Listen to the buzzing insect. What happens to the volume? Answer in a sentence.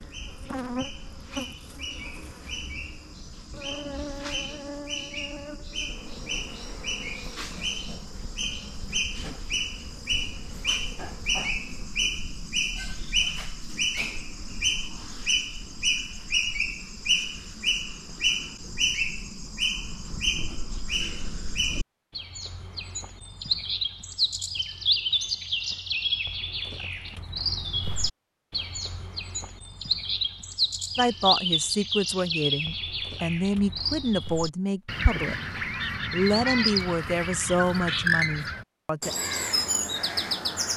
The volume of the buzzing insect goes down.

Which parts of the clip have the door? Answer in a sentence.
The door can't be heard in this clip.